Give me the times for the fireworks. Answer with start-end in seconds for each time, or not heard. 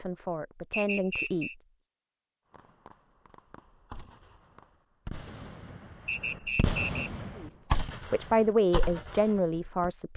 2.5-9.9.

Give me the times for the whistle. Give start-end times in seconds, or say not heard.
0.7-1.6, 6.0-7.1.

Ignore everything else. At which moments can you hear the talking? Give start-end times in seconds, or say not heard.
0.0-1.5, 7.3-10.1.